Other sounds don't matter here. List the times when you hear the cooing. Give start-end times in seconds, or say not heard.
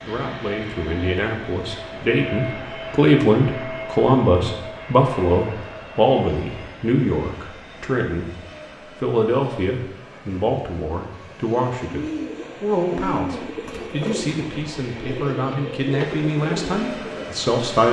11.9-17.2.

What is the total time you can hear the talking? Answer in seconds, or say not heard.
17 s.